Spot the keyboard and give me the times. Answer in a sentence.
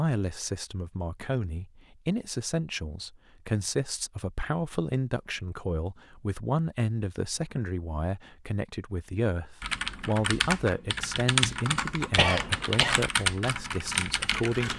You can hear the keyboard from 9.6 to 14.7 s.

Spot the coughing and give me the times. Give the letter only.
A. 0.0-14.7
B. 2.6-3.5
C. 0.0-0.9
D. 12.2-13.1
D.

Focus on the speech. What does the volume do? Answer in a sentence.
The volume of the speech stays about the same.